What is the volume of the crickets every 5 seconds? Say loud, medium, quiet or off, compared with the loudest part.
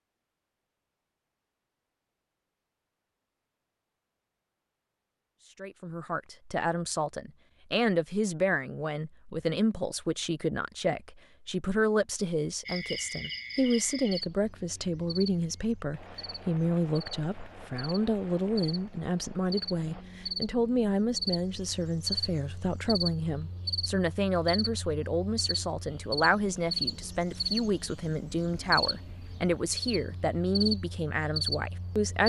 off, off, medium, medium, loud, loud, loud.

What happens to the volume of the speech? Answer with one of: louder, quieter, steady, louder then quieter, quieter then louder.
steady.